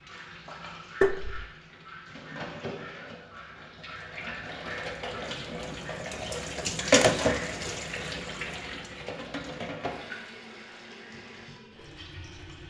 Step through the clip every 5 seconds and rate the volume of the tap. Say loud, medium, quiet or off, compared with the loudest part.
medium, loud, quiet.